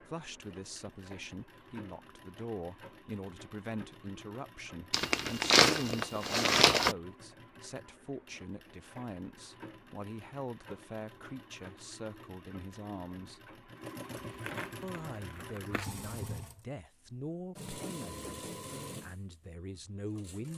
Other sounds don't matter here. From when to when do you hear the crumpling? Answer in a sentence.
The crumpling can be heard from 4.9 to 7.0 s and from 14.2 to 15.9 s.